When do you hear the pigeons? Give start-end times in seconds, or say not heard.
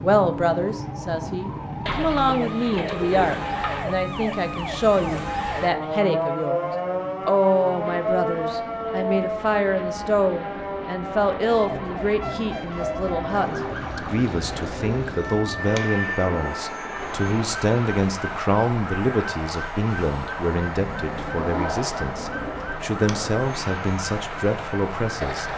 1.9-3.9, 13.2-15.4, 20.8-22.8.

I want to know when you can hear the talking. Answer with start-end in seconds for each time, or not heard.
0.0-25.5.